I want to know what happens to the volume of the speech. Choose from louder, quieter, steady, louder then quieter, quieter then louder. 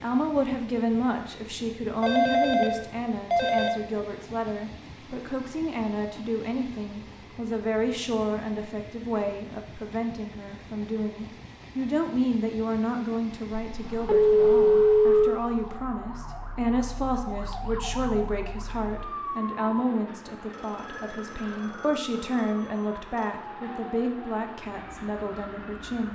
steady.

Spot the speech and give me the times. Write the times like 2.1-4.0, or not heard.
0.0-26.1.